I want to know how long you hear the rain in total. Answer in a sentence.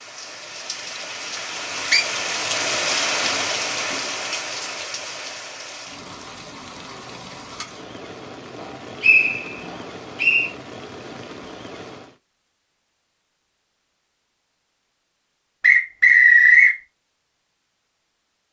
The rain can be heard for 12 seconds in total.